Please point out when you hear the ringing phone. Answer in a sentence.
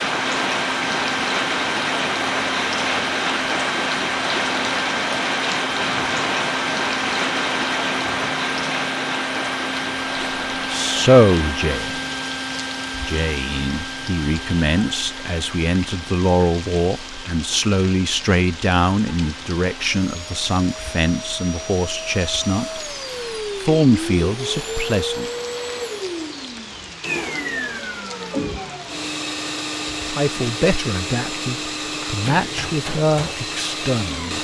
You can't hear the ringing phone here.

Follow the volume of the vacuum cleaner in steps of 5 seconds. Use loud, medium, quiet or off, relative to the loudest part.
loud, loud, loud, medium, loud, loud, loud.